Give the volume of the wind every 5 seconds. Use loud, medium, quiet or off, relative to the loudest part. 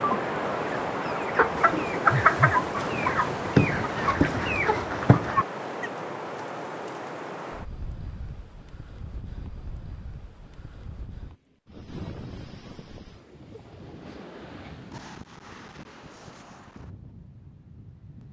loud, medium, quiet, quiet.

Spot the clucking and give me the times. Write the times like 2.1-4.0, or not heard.
0.0-5.9.